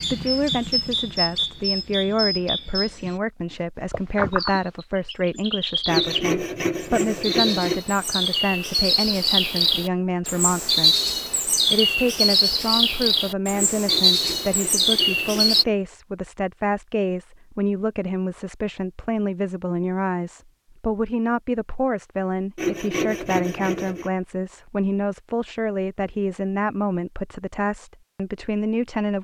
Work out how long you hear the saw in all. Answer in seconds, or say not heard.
6 s.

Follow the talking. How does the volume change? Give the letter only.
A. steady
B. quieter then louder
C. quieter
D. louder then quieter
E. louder
A.